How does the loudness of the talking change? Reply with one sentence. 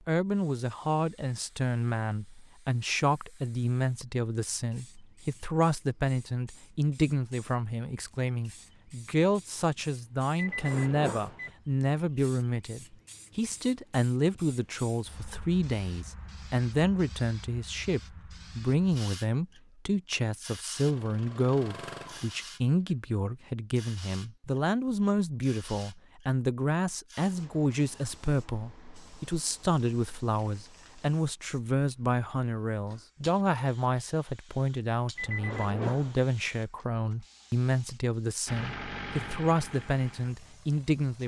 The volume of the talking stays about the same.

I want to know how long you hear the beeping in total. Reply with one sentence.
The beeping can be heard for 2 seconds in total.